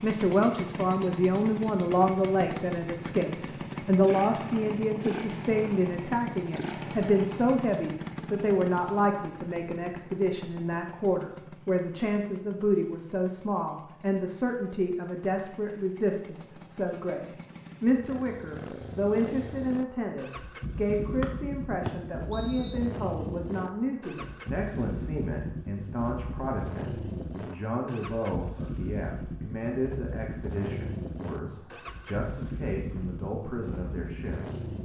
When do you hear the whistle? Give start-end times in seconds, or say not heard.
21.2-22.8.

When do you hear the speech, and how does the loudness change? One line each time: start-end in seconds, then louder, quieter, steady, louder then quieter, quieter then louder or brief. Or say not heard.
0.0-34.6 quieter.